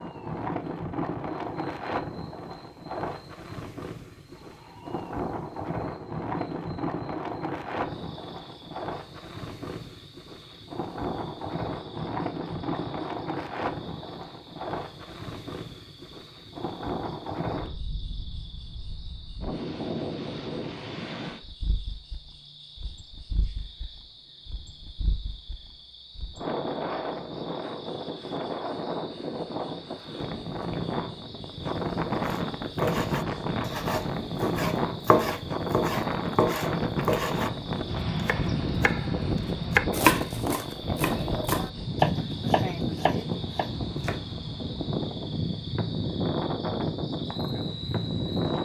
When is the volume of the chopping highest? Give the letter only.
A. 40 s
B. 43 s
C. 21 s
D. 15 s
A.